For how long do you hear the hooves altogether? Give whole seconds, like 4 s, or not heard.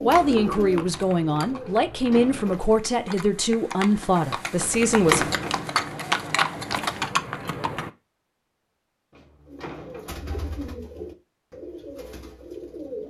8 s.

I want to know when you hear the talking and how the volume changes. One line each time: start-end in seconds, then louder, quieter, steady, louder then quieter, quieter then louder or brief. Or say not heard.
0.0-5.2 steady.